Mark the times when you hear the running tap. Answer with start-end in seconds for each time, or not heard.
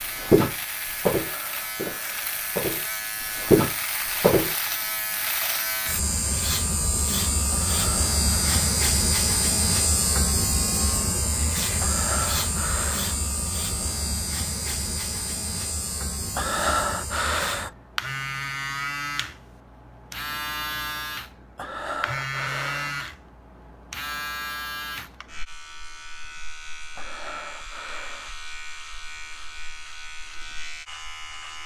not heard.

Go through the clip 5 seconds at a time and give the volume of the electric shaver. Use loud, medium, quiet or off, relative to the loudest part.
medium, loud, loud, medium, medium, quiet, quiet.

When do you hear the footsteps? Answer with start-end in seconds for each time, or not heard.
0.1-4.5.